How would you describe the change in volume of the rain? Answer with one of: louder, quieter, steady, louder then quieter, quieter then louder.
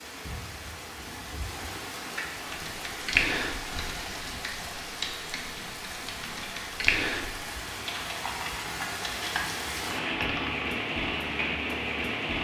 louder.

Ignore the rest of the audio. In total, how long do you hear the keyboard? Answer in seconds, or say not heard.
8 s.